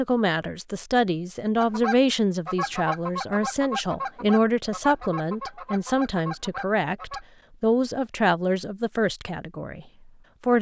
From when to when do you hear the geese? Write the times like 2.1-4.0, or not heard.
1.6-7.2.